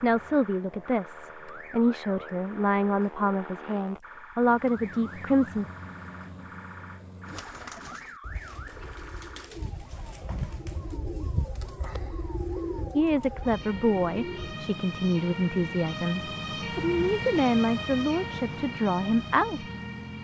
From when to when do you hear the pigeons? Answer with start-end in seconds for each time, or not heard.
7.2-14.6.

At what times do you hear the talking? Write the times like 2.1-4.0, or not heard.
0.0-5.7, 12.9-19.6.